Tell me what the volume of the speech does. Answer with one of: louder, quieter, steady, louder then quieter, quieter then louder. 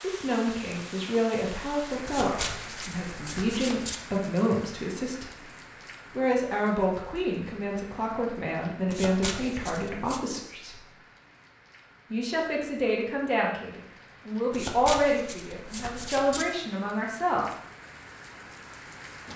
steady.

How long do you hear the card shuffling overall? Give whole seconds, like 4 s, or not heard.
5 s.